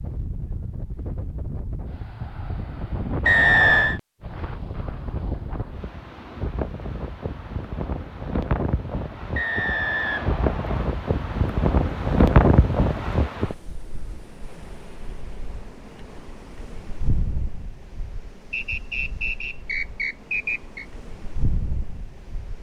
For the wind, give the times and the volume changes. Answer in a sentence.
The wind can be heard from 0.0 to 22.5 s, getting louder then quieter.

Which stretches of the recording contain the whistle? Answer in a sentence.
The whistle can be heard from 3.2 to 4.0 s, from 9.3 to 10.9 s and from 18.5 to 20.9 s.